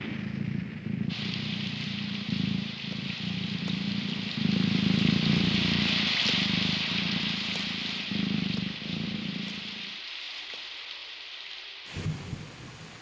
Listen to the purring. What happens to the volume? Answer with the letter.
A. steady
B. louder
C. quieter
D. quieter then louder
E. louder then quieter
E.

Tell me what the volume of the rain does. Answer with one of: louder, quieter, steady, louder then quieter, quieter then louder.
louder then quieter.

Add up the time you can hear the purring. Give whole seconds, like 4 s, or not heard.
10 s.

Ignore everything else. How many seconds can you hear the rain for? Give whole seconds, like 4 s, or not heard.
13 s.